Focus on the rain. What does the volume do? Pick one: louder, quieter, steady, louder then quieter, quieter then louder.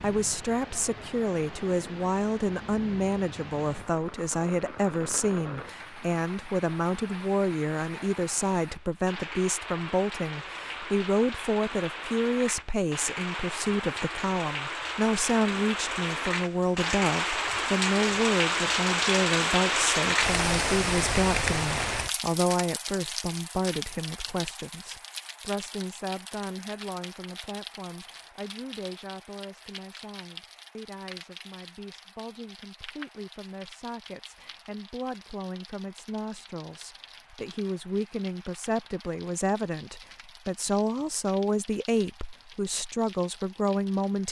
louder then quieter.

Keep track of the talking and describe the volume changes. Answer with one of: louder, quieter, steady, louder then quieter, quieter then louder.
quieter then louder.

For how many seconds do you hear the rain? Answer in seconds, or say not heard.
44 s.